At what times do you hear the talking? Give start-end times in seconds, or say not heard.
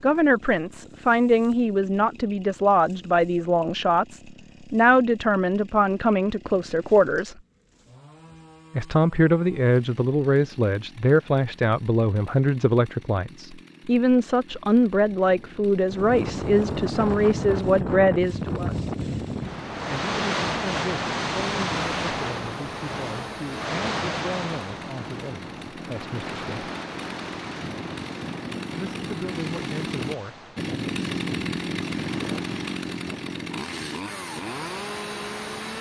0.0-7.3, 8.8-18.8, 19.9-26.7, 28.8-30.5.